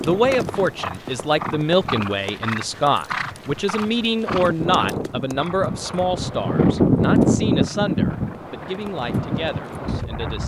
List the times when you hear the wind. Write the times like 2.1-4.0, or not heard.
0.0-10.4.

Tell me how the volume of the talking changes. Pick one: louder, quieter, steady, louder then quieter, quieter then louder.
quieter.